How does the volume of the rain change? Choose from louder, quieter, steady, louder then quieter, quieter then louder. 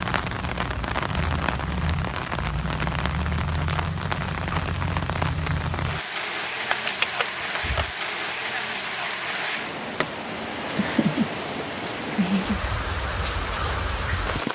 steady.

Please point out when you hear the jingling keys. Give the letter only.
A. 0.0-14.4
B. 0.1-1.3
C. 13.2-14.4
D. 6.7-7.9
D.